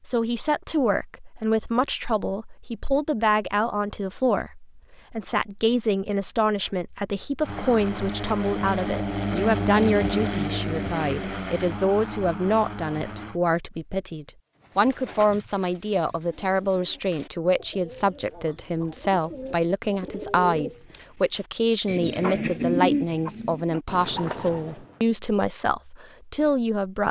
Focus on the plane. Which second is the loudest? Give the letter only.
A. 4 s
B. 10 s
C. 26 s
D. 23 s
B.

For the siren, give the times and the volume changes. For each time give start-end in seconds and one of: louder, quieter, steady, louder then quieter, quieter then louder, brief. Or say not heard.
not heard.